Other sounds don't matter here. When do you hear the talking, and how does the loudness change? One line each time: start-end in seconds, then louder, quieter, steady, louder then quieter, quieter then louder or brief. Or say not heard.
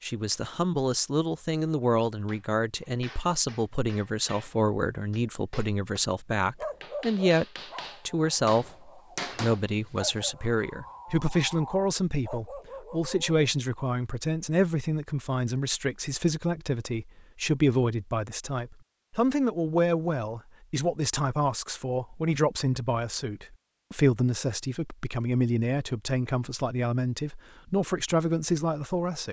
0.0-7.5 steady
8.1-29.2 steady.